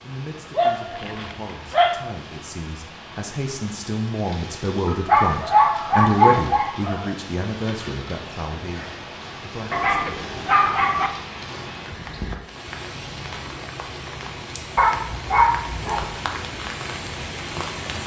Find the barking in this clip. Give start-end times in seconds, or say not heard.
0.6-2.0, 4.8-7.2, 9.7-11.1, 14.8-16.1.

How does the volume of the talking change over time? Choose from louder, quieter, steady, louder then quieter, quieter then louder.
louder then quieter.